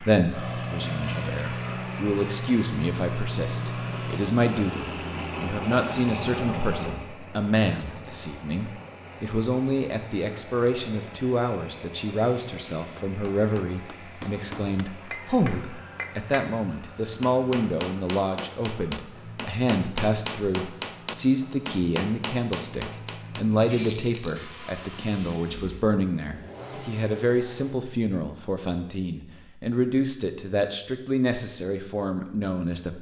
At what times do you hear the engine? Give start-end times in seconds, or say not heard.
0.0-27.8.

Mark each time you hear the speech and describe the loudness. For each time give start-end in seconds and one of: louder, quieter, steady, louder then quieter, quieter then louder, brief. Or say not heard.
0.0-32.9 steady.